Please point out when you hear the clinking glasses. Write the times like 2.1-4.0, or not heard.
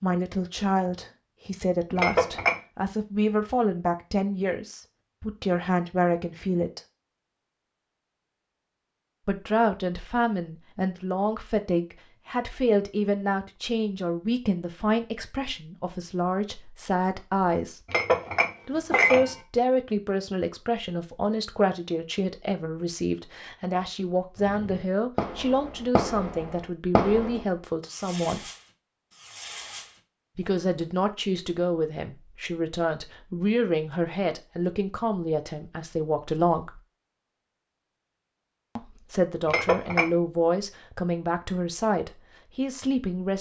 1.9-2.6, 17.9-19.4, 39.5-40.1.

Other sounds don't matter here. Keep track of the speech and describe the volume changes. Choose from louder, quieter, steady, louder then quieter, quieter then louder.
steady.